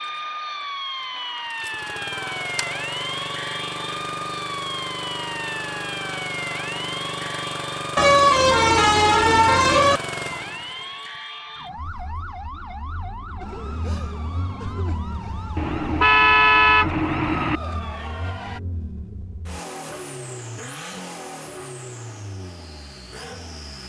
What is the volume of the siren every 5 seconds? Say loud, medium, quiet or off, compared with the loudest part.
loud, loud, medium, medium, off.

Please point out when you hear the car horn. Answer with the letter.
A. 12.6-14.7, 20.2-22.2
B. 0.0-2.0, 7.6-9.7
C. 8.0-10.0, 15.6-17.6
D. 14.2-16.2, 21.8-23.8
C.